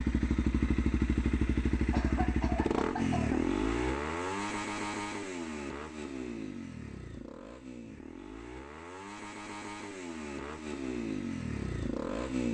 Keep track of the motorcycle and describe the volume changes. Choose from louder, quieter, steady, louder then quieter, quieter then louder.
quieter then louder.